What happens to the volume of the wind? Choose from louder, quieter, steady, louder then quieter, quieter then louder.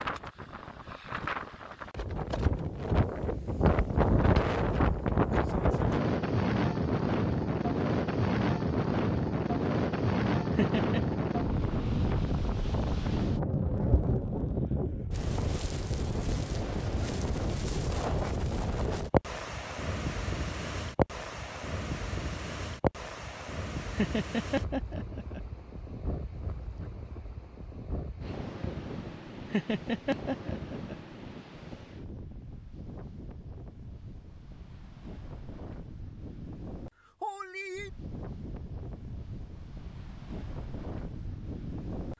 quieter.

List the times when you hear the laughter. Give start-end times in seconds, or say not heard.
10.6-11.2, 23.9-25.4, 29.5-30.9.